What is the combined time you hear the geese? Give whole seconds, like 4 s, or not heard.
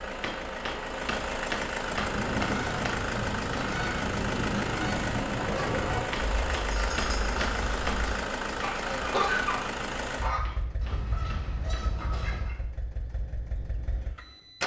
11 s.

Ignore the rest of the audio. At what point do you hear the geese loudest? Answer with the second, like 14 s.
9 s.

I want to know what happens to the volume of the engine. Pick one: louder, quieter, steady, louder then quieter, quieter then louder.
quieter.